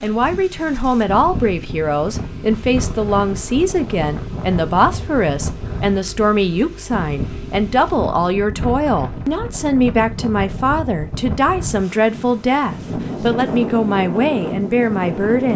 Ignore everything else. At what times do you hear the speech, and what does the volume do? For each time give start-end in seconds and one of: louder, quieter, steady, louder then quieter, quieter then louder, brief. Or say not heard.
0.0-15.5 steady.